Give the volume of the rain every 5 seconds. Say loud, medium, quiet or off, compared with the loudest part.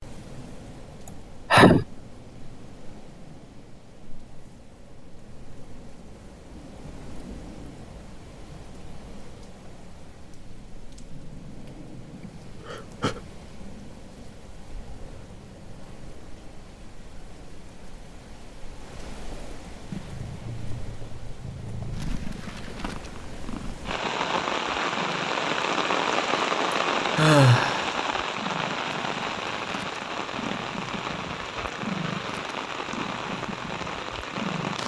quiet, quiet, quiet, quiet, medium, loud, medium.